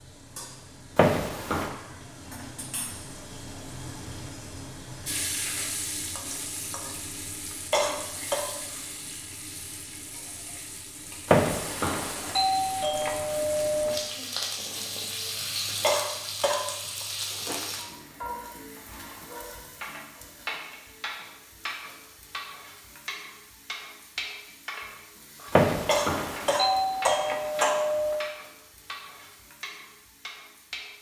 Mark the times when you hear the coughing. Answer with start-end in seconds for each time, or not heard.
7.7-8.4, 15.8-17.1, 25.9-27.7.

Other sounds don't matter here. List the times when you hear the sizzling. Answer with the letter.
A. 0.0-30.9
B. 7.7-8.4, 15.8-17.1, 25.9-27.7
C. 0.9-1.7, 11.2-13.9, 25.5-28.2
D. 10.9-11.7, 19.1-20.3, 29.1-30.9
A.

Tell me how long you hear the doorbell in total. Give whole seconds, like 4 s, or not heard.
6 s.